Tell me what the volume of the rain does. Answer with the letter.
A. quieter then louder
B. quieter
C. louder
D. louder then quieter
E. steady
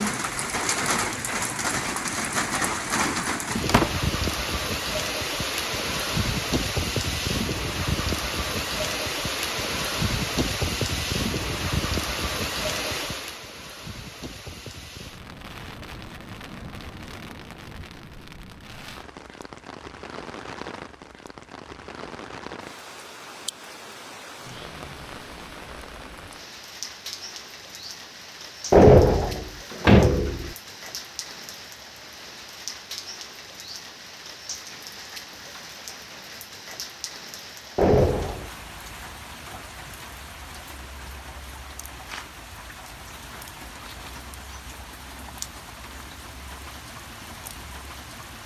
B.